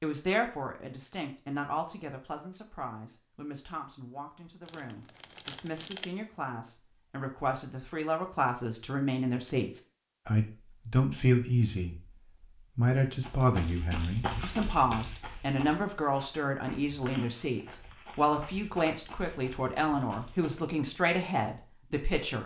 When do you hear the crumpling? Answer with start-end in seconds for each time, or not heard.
4.7-6.1.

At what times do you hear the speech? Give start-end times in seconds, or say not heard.
0.0-11.9, 12.8-22.4.